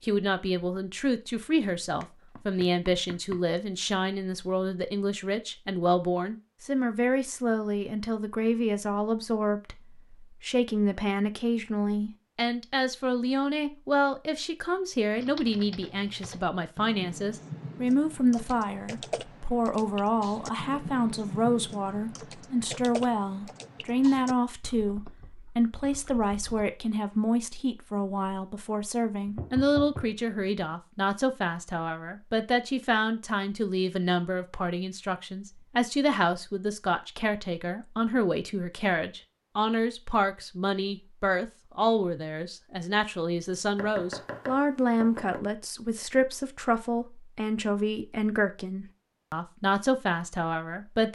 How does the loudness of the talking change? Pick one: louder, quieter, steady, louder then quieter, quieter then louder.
steady.